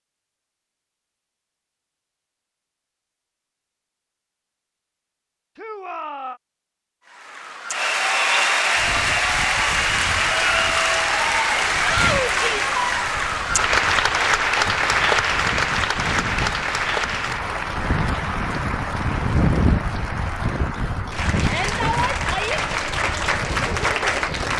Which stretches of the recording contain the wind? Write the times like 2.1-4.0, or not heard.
8.8-24.5.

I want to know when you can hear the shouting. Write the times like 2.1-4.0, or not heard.
5.5-6.4, 11.8-12.7, 21.4-22.6.